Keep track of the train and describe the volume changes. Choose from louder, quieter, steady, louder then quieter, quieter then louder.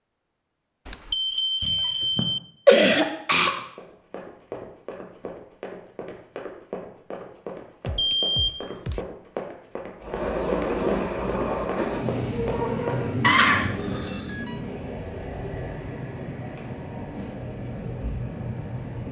quieter.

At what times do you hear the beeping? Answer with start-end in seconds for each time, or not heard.
0.8-2.4, 7.8-9.1, 14.1-14.6.